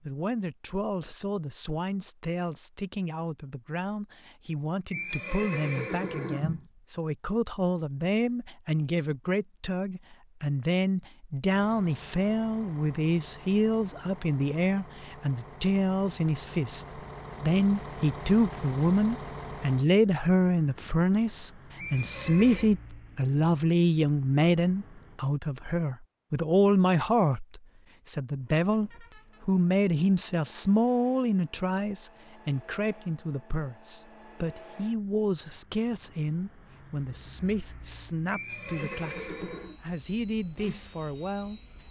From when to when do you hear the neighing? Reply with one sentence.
The neighing can be heard from 4.9 to 6.7 s, from 21.8 to 22.7 s and from 38.3 to 39.8 s.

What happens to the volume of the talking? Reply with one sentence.
The loudness of the talking goes up, then down.